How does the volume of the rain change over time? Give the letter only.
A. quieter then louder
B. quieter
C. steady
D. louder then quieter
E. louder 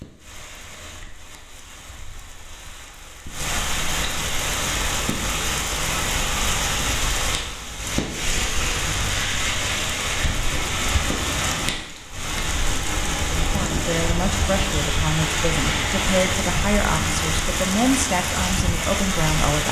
E.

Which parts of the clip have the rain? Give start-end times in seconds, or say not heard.
0.0-19.6.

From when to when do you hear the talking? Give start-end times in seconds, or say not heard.
13.4-19.6.